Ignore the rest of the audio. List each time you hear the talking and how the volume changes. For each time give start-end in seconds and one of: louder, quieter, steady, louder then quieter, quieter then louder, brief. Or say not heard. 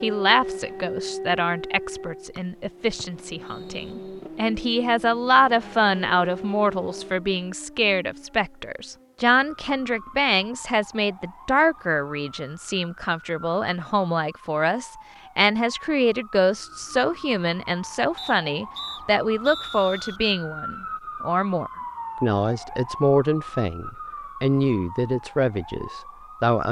0.0-26.6 steady.